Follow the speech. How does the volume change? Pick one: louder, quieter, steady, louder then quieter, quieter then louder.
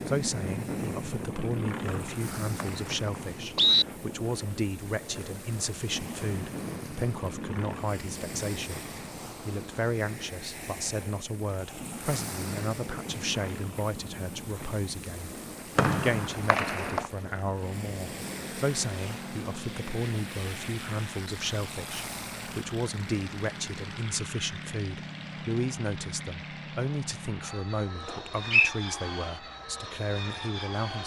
steady.